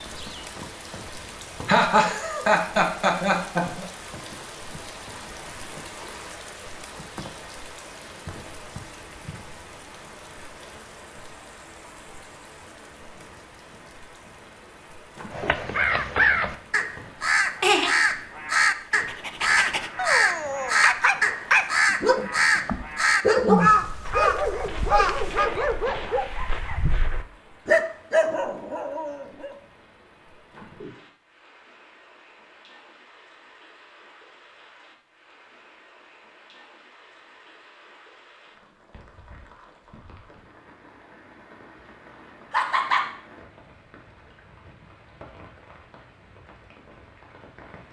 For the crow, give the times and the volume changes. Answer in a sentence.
The crow can be heard from 15.3 to 25.5 s, at a steady volume.